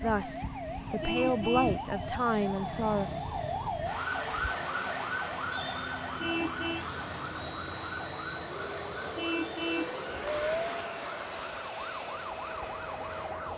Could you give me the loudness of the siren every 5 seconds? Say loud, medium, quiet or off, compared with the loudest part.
loud, loud, medium.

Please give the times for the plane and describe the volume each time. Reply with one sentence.
The plane can be heard from 0.0 to 13.5 s, getting quieter then louder.